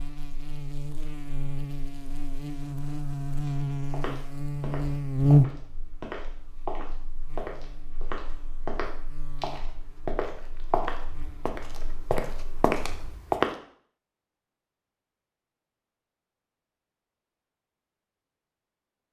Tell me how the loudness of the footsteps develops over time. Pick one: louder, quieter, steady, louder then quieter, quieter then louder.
louder.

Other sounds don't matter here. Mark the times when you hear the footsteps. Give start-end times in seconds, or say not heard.
3.5-13.5.